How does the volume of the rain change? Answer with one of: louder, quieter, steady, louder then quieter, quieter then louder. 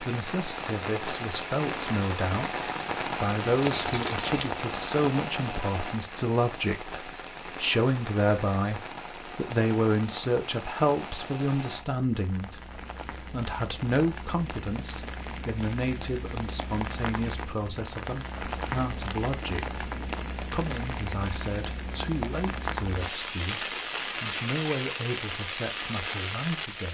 quieter then louder.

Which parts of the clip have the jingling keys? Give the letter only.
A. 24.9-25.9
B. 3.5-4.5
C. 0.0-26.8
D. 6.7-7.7
B.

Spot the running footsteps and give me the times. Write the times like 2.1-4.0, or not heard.
not heard.